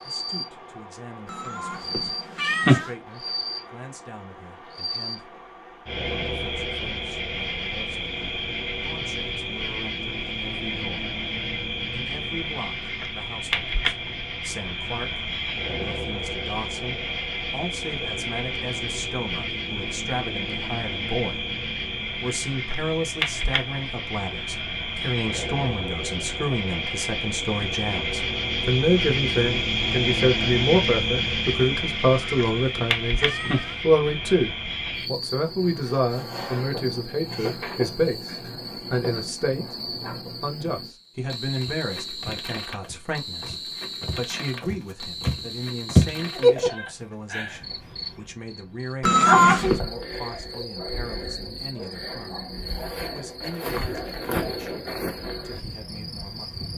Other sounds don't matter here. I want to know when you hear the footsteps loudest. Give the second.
46 s.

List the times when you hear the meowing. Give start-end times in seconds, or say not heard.
1.3-2.9, 32.4-33.8, 49.0-49.8.